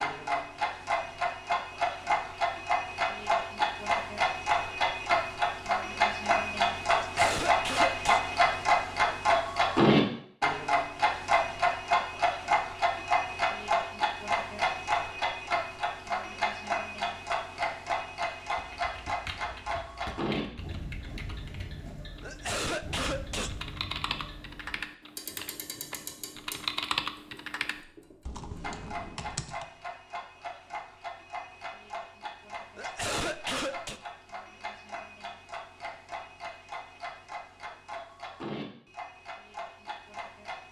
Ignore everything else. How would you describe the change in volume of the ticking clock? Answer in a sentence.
The loudness of the ticking clock goes down.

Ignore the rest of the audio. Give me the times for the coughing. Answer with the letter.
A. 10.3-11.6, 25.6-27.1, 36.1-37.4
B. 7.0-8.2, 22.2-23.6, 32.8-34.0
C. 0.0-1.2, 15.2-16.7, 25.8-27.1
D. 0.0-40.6
B.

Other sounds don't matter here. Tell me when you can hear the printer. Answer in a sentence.
You can't hear the printer here.